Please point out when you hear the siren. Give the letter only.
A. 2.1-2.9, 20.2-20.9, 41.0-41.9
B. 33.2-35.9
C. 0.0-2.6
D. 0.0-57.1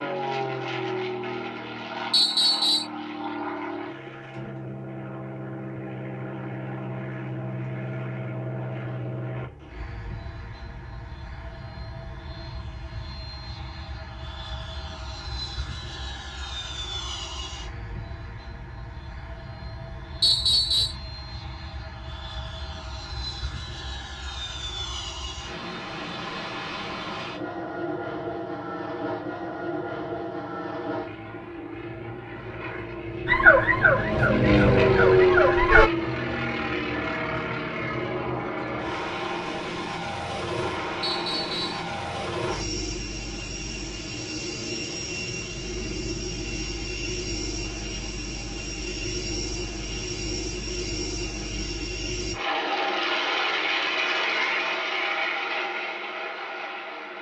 B.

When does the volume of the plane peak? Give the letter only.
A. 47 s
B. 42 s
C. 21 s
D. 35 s
D.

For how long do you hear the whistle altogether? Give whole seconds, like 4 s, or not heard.
2 s.